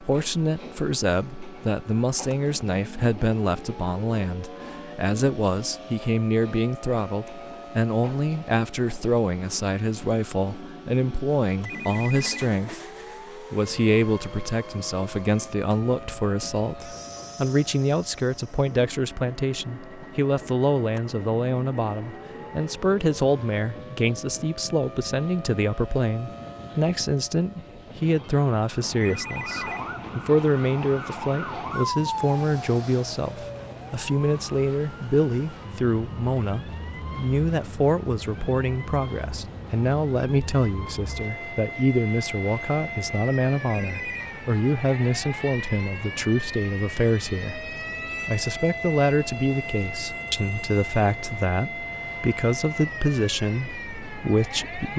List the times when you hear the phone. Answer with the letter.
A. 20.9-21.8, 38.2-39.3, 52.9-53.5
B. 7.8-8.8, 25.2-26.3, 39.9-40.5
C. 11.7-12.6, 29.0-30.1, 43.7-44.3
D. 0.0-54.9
C.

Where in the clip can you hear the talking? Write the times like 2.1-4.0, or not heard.
0.0-54.9.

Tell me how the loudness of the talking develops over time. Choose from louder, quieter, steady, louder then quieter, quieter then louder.
steady.